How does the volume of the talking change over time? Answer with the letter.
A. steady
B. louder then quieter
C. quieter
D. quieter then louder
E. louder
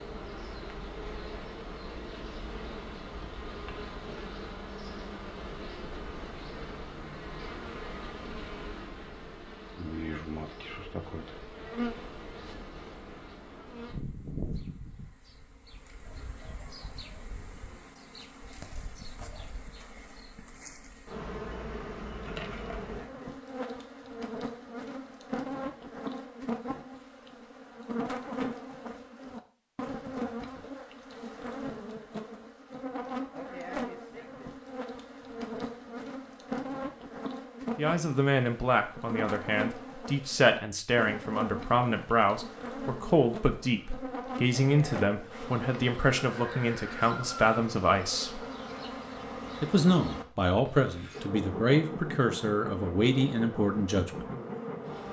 A.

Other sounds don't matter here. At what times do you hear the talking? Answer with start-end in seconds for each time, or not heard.
37.8-48.5, 49.6-54.3.